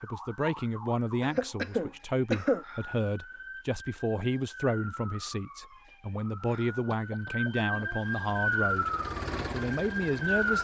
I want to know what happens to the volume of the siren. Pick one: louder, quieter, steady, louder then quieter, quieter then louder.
louder.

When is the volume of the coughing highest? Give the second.
2 s.